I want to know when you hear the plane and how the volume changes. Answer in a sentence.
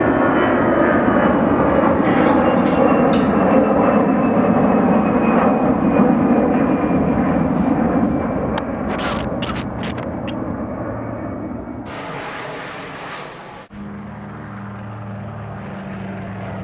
You can hear the plane from 0.0 to 16.6 s, getting quieter.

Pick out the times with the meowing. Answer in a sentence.
The meowing can't be heard in this clip.